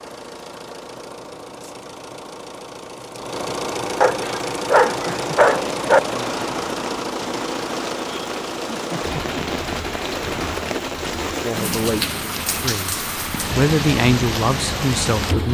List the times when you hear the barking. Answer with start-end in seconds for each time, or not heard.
4.0-6.0.